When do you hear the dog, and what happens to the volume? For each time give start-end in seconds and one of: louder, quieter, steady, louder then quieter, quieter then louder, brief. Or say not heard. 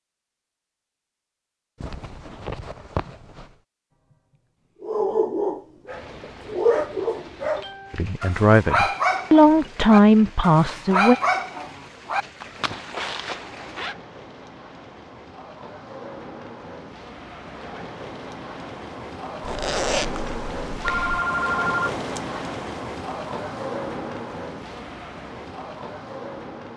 4.1-12.2 steady.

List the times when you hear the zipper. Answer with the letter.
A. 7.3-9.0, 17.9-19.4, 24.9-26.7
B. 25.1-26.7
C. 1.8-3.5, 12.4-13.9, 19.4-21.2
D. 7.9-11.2
C.